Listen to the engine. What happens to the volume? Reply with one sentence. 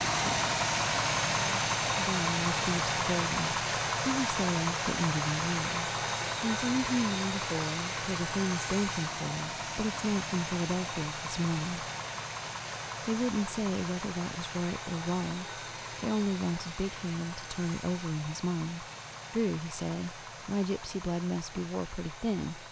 The loudness of the engine goes down.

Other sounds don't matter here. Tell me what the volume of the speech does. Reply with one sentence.
The volume of the speech stays about the same.